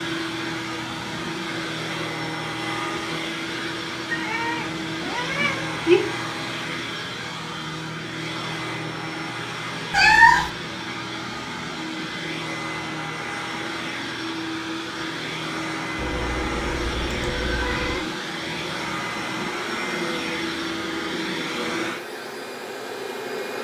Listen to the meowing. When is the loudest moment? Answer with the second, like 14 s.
10 s.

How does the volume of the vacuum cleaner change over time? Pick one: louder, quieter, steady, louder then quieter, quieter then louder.
steady.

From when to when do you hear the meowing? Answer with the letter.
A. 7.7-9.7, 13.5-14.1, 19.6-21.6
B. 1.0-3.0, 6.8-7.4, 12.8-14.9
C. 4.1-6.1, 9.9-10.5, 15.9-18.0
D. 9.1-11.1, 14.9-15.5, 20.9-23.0
C.